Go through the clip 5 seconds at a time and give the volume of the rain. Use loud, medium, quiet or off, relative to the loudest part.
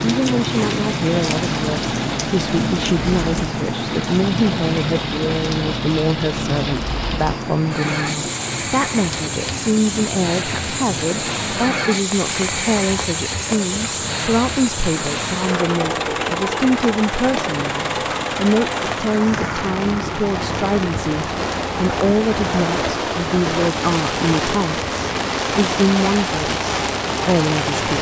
loud, medium, medium, medium, loud, loud.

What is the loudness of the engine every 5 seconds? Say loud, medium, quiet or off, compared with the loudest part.
medium, loud, loud, loud, medium, medium.